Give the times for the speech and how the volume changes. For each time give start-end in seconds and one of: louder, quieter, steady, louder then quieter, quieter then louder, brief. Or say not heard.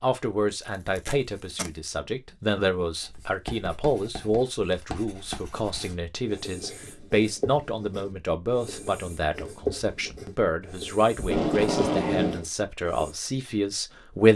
0.0-14.3 steady.